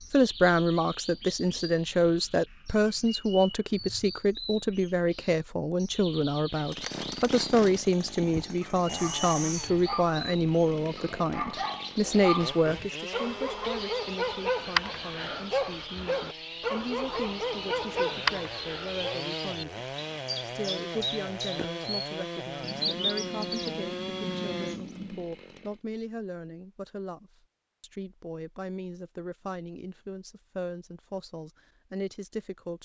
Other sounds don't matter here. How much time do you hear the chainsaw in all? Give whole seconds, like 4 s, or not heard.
19 s.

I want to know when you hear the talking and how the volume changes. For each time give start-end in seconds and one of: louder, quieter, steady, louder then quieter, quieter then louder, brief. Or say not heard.
0.1-19.9 quieter
20.4-32.8 steady.